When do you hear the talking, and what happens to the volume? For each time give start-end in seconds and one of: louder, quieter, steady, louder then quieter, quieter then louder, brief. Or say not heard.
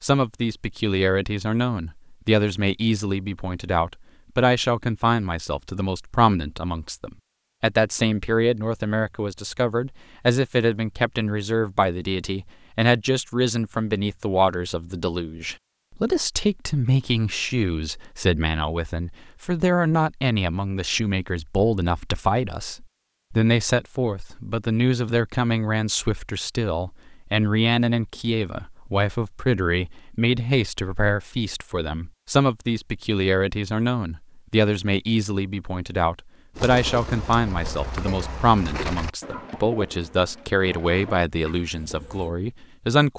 0.0-43.1 steady.